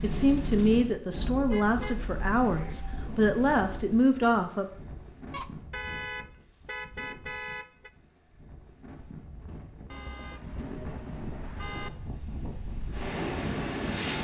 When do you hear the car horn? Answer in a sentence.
You can hear the car horn from 1.5 to 2.9 s, from 5.3 to 7.9 s and from 9.9 to 11.9 s.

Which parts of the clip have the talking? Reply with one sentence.
You can hear the talking from 0.0 to 4.7 s.